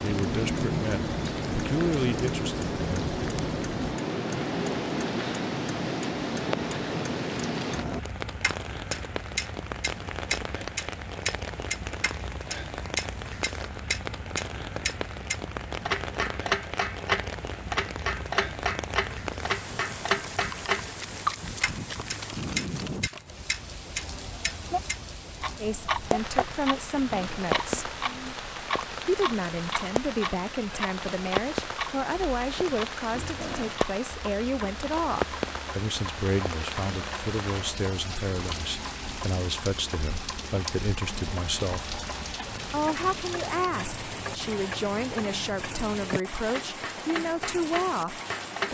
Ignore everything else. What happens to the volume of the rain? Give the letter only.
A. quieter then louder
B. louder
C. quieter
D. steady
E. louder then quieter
D.